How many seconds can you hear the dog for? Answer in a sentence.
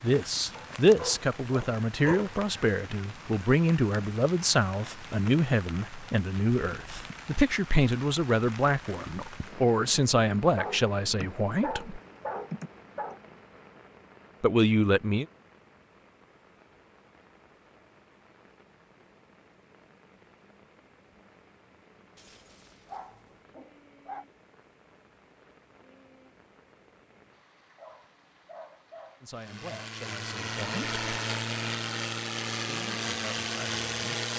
You can hear the dog for 9 seconds altogether.